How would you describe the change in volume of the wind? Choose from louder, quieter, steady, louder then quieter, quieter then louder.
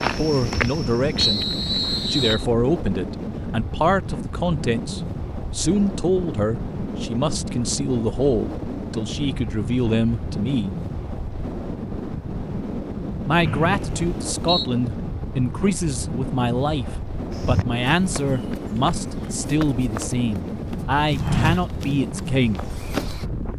steady.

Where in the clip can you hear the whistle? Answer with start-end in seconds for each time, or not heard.
1.1-2.5, 13.4-14.7.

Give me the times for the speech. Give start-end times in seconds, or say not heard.
0.0-1.4, 2.0-10.8, 13.2-22.6.